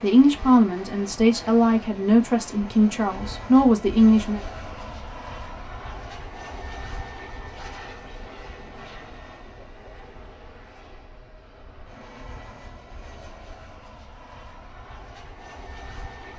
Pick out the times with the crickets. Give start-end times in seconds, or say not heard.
not heard.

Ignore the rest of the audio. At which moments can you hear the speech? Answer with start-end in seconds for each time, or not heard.
0.0-4.4.